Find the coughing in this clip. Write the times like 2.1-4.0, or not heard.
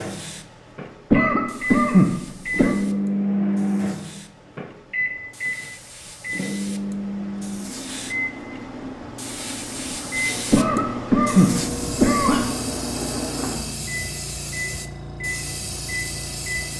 1.1-2.8, 10.5-12.5.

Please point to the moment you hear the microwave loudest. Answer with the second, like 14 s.
3 s.